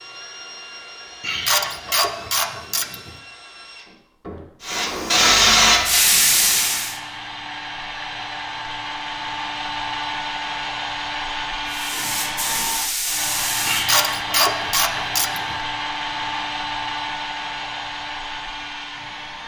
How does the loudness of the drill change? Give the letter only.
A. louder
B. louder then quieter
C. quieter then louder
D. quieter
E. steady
A.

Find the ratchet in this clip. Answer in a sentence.
The ratchet can be heard from 1.2 to 3.1 s and from 13.7 to 15.6 s.